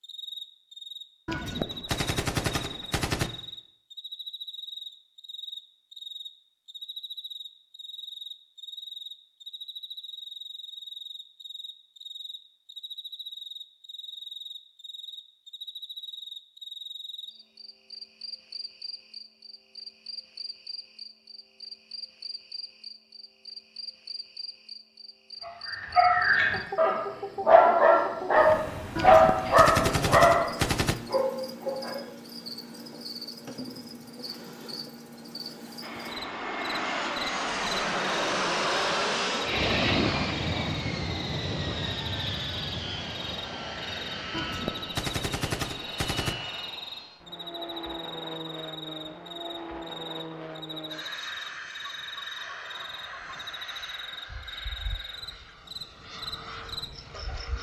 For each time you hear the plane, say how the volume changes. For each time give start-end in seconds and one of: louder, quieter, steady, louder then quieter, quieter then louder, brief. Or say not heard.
35.8-57.5 quieter.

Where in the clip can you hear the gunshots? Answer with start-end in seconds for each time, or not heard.
1.2-3.3, 28.9-30.9, 44.3-46.4.